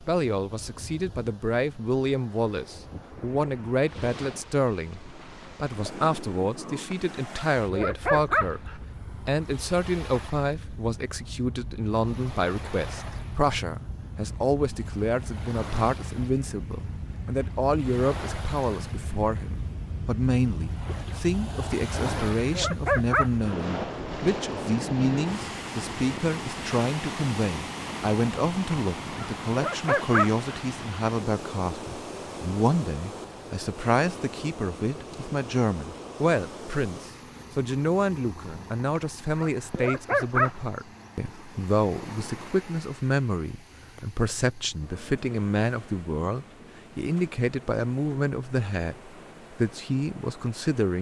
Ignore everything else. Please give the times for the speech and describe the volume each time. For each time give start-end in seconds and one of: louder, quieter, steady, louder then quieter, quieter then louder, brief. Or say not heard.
0.0-50.9 steady.